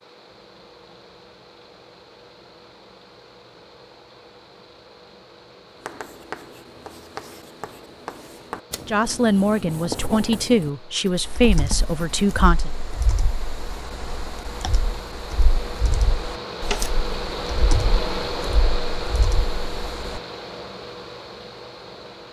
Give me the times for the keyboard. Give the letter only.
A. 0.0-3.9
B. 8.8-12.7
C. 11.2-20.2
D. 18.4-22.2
C.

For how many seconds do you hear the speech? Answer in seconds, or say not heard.
4 s.